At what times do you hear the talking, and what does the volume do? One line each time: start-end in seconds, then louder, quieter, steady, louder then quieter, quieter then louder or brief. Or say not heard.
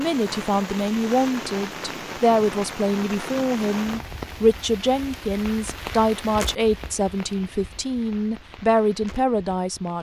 0.0-9.9 steady.